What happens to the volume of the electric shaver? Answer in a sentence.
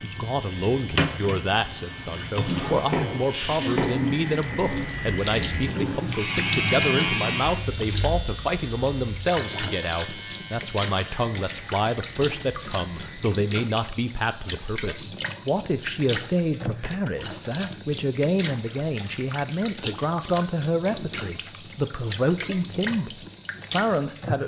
The loudness of the electric shaver goes up, then down.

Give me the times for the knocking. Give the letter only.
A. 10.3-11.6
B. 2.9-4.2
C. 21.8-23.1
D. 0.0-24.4
B.